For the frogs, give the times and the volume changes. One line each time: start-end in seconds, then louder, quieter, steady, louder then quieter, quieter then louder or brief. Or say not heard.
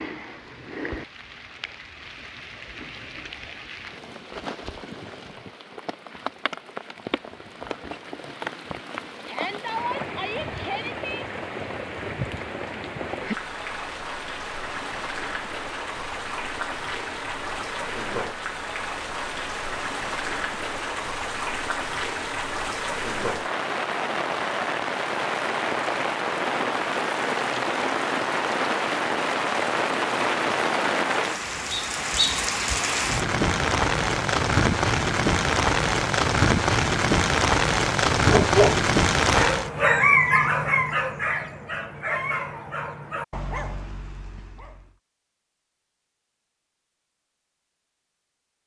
not heard.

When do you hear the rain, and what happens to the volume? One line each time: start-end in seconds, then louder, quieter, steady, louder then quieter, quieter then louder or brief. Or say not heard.
0.0-39.7 louder.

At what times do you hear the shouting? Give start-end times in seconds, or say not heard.
9.2-11.2.